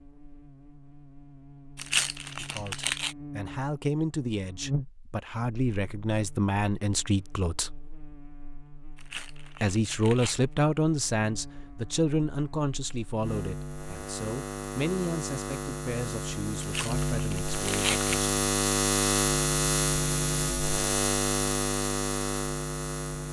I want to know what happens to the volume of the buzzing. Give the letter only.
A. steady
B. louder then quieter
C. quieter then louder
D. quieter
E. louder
C.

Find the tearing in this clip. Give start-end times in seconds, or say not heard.
1.8-3.1, 8.9-10.3, 16.6-18.2.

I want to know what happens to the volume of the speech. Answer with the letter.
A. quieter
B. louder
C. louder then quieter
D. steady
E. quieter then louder
C.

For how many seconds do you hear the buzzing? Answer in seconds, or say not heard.
23 s.